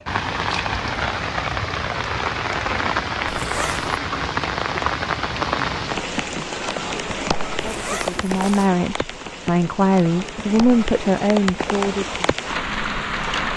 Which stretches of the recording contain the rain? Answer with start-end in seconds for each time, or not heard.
0.0-13.5.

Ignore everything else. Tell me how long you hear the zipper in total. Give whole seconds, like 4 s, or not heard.
2 s.